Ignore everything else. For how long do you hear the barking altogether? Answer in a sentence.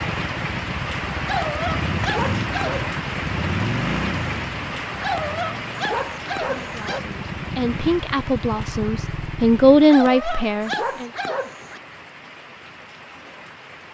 You can hear the barking for 6 seconds altogether.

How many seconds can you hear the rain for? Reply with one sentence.
The rain can be heard for 14 seconds in total.